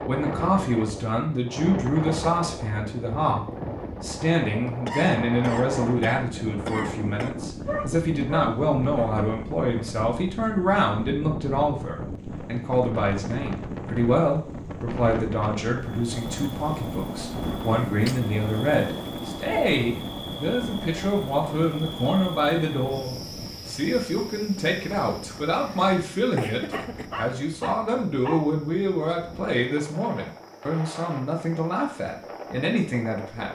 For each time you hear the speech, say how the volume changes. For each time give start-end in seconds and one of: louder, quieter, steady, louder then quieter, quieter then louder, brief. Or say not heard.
0.1-33.5 steady.